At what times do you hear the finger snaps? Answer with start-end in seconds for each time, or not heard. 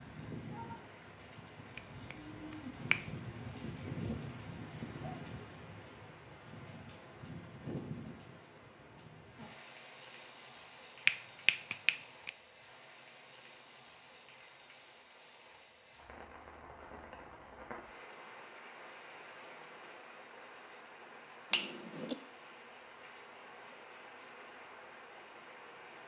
1.8-3.0, 11.1-12.3, 21.5-22.1.